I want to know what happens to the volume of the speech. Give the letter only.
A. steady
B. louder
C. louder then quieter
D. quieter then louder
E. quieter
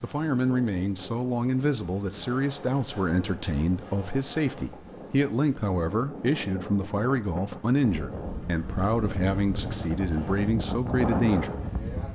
A.